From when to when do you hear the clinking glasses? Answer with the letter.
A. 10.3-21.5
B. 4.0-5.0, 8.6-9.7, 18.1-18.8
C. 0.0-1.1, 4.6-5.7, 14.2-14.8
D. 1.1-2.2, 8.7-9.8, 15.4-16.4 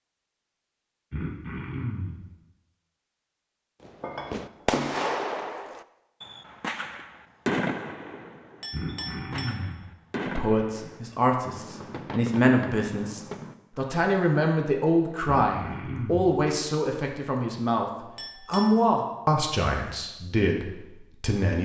B.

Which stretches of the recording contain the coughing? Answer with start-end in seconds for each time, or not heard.
1.1-2.2, 8.7-9.8, 15.4-16.4.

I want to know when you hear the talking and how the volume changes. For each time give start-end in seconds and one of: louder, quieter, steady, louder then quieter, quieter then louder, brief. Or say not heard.
10.3-21.5 steady.